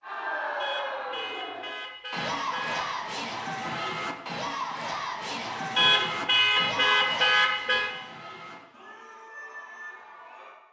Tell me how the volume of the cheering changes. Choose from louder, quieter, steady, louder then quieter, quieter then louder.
quieter.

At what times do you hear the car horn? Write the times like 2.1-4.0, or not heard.
0.6-2.9, 5.8-7.9.